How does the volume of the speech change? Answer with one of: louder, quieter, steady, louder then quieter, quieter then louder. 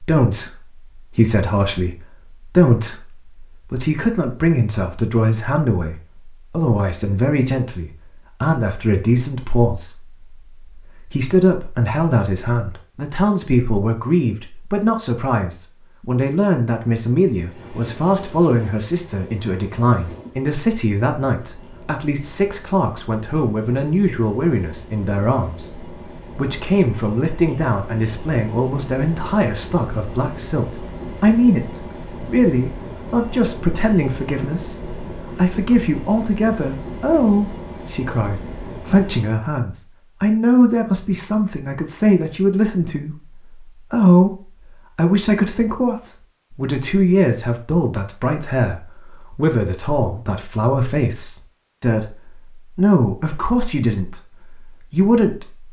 steady.